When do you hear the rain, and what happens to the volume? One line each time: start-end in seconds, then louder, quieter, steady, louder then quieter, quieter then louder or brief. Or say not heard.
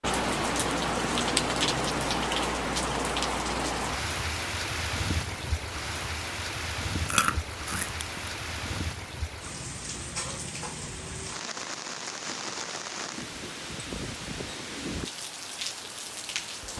0.0-16.7 quieter.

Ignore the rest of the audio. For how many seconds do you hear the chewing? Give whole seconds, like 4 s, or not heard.
2 s.